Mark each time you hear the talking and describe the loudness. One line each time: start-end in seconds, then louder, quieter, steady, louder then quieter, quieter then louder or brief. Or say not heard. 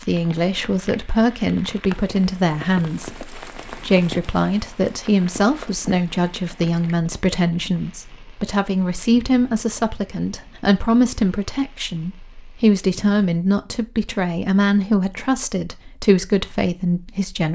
0.0-17.5 steady.